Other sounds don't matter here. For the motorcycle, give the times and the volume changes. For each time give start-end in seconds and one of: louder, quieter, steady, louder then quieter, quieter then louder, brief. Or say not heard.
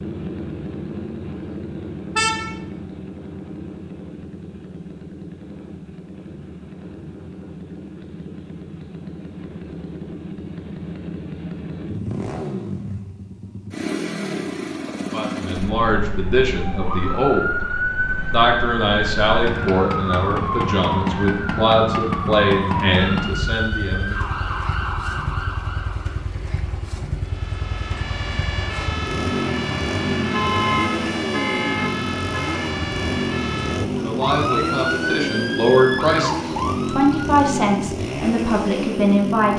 0.0-39.5 louder.